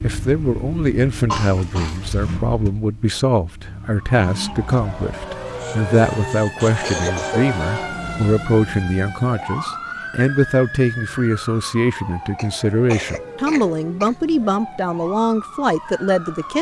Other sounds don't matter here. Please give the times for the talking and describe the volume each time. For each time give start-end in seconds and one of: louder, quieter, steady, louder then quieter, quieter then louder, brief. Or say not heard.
0.0-16.5 steady.